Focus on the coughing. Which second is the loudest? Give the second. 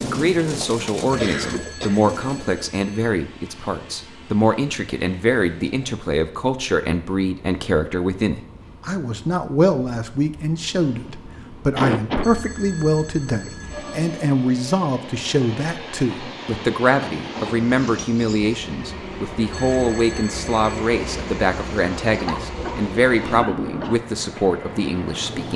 12 s.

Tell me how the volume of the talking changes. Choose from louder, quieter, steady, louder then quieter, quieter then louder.
steady.